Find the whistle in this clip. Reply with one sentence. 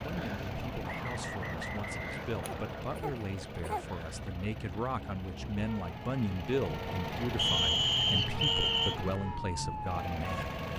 You can hear the whistle from 0.8 to 2.9 s and from 7.3 to 8.9 s.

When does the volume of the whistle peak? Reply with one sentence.
The loudest moment of the whistle is at 8 seconds.